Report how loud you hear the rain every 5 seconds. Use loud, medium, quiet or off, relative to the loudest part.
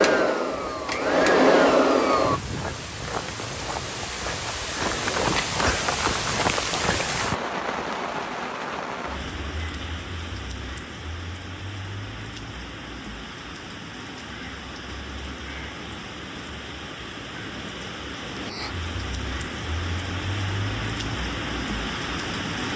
medium, loud, medium, medium, loud.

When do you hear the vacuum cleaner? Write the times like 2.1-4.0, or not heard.
0.0-2.4.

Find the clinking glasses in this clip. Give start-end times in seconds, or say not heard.
not heard.